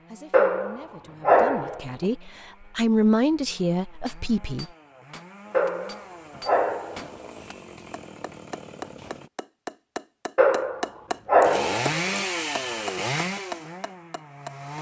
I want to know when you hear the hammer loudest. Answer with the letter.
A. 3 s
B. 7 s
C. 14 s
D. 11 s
D.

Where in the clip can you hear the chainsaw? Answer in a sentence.
The chainsaw can be heard from 0.0 to 9.3 s and from 11.4 to 14.7 s.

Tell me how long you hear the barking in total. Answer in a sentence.
You can hear the barking for 5 seconds altogether.